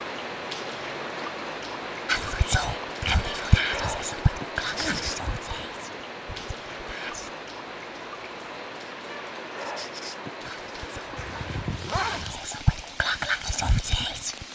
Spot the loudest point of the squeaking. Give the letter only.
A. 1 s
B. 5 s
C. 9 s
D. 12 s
B.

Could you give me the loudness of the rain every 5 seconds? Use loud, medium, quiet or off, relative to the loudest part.
loud, loud, medium.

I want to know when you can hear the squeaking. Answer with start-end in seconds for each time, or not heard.
4.6-5.2, 9.6-10.2.